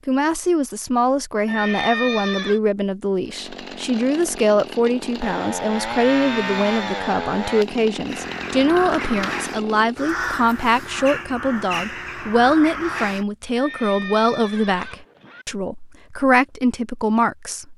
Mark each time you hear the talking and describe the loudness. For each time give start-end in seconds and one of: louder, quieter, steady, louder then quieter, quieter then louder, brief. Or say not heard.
0.1-17.7 steady.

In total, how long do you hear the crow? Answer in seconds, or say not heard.
5 s.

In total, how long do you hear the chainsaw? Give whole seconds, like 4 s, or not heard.
7 s.